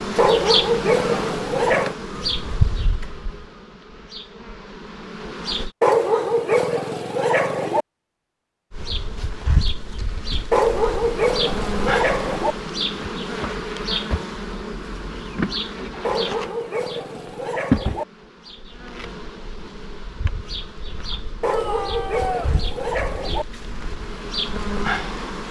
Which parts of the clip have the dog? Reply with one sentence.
You can hear the dog from 0.1 to 1.9 s, from 5.8 to 7.8 s, from 10.5 to 12.6 s, from 16.0 to 18.1 s and from 21.4 to 23.4 s.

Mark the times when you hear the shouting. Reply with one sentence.
You can hear the shouting from 21.4 to 22.6 s.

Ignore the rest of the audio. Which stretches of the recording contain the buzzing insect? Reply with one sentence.
The buzzing insect can be heard from 0.0 to 5.7 s and from 8.7 to 25.4 s.